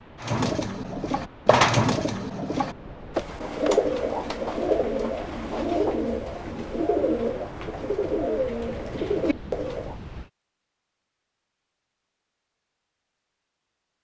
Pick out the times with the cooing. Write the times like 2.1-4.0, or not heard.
0.2-9.9.